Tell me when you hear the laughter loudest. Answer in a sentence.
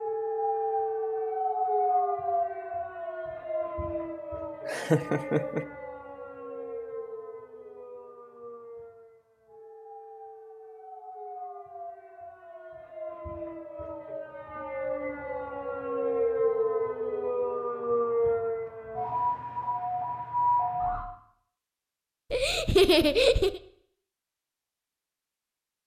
The loudest moment of the laughter is at 23 seconds.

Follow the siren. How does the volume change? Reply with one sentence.
The loudness of the siren goes down, then up.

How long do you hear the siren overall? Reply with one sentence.
The siren can be heard for 21 seconds in total.